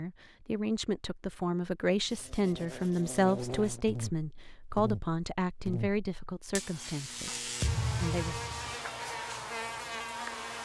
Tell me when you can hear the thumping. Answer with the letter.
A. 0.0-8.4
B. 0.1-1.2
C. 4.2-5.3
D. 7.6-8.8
D.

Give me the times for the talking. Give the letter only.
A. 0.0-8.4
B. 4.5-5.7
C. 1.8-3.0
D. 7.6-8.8
A.